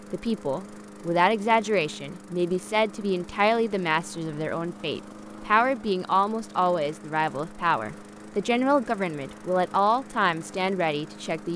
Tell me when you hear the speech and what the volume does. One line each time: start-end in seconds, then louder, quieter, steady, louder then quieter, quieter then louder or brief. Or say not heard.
0.1-11.5 steady.